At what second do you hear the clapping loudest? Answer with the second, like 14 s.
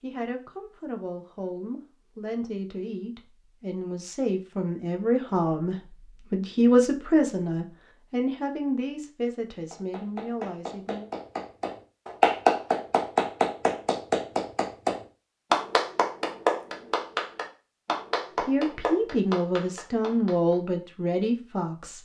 12 s.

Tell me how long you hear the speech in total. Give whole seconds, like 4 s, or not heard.
15 s.